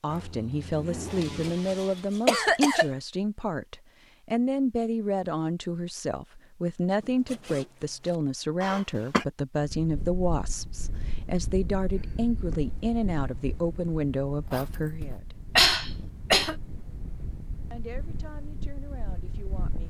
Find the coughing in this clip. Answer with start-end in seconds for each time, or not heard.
1.1-2.9, 8.6-9.2, 15.6-16.6.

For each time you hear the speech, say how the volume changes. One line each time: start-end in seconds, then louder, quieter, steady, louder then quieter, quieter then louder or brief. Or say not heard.
0.0-15.4 steady
17.7-19.8 brief.